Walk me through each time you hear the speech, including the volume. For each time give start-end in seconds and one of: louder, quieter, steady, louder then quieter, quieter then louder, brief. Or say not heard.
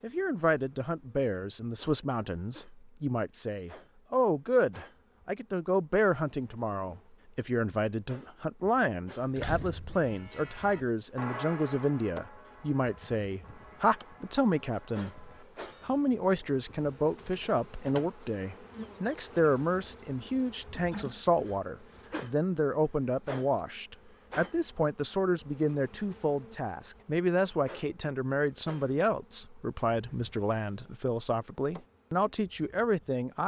0.0-33.4 steady.